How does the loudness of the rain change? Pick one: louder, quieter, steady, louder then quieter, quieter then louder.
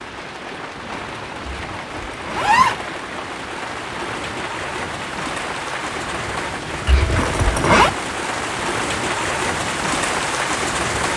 louder.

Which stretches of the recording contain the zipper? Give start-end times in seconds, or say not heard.
1.7-2.8, 6.8-7.9.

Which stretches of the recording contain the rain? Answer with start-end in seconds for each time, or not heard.
0.0-11.1.